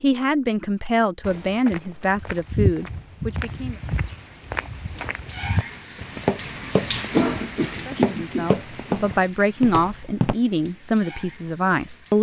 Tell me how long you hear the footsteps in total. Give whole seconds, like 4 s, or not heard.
9 s.